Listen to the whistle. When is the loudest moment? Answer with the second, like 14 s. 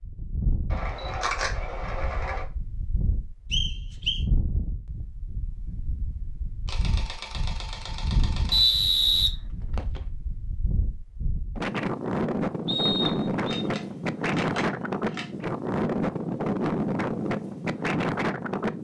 9 s.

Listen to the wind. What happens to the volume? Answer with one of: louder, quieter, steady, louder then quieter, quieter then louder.
louder.